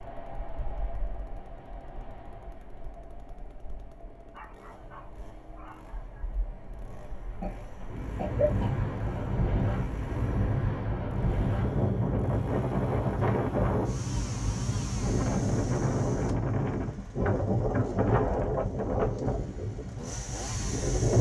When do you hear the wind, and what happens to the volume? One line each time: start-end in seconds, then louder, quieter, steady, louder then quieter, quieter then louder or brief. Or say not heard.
0.0-21.1 louder.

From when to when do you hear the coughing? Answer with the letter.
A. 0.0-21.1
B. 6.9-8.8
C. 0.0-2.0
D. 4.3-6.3
B.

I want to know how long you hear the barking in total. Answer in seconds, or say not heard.
2 s.